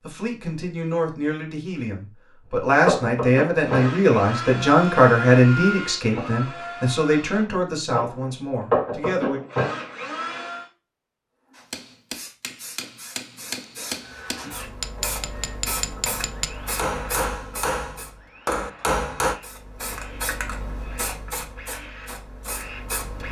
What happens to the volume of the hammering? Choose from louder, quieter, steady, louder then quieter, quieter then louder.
louder.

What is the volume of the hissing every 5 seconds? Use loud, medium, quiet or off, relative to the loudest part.
off, off, medium, loud, loud.